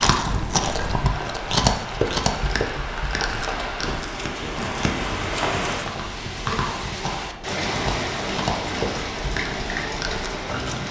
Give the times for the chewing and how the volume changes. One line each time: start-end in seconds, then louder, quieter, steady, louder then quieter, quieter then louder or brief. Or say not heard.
0.0-10.8 quieter.